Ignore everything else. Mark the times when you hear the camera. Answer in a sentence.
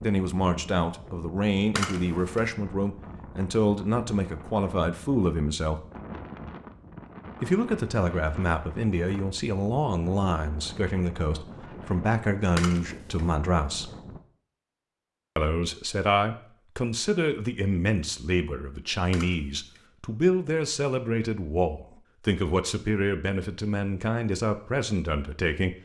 The camera can be heard from 1.8 to 2.5 s, from 12.6 to 13.2 s and from 19.1 to 19.8 s.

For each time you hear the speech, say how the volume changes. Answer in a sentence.
The speech can be heard from 0.0 to 5.8 s, at a steady volume; from 7.4 to 13.9 s, at a steady volume; and from 15.3 to 25.8 s, at a steady volume.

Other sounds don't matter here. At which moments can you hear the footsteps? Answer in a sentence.
You can't hear the footsteps here.